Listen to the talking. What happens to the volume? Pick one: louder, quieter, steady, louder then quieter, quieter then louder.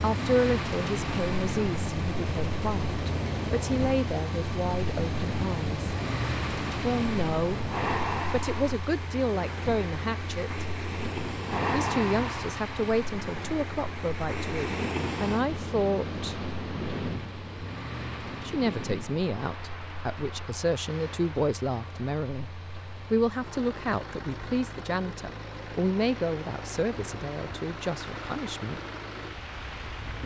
steady.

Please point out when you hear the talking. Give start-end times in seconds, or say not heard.
0.0-5.9, 6.8-10.7, 11.7-16.4, 18.4-22.5, 23.1-28.8.